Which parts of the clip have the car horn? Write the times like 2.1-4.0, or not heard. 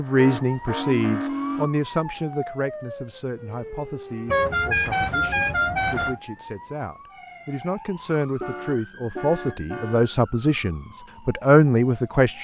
0.1-1.6, 4.2-6.2, 8.4-10.1.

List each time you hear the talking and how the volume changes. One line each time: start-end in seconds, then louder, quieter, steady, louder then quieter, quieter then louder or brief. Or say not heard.
0.0-12.3 quieter then louder.